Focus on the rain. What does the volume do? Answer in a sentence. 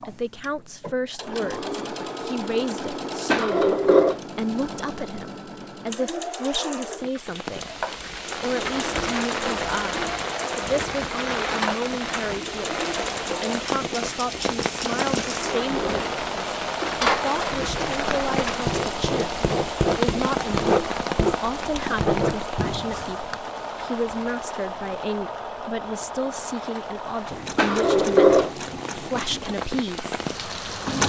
The loudness of the rain goes down.